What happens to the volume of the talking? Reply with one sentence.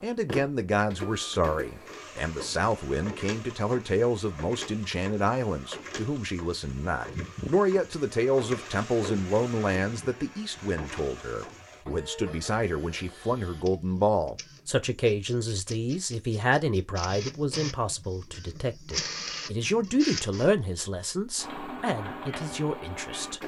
The loudness of the talking stays about the same.